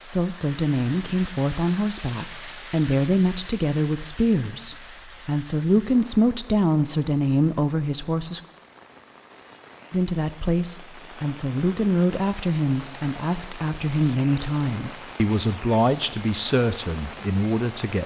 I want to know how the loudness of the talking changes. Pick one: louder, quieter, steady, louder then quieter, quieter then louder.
steady.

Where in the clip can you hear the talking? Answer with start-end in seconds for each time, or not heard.
0.0-8.4, 9.9-18.0.